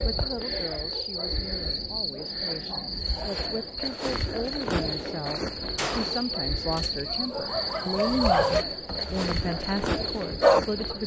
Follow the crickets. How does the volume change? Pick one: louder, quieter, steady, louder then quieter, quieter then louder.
steady.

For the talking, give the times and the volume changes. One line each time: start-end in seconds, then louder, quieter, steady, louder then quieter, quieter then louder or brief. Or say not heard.
0.0-11.0 louder.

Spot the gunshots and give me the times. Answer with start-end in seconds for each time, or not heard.
5.8-7.0.